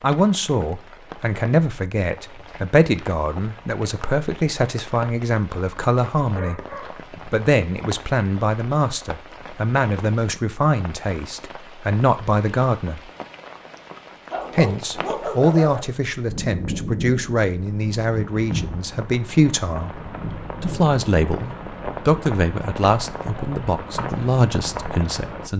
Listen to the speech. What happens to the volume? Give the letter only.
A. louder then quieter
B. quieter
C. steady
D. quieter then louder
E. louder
C.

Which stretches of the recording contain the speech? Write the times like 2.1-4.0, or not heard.
0.0-6.6, 7.2-13.1, 14.6-19.9, 20.6-25.5.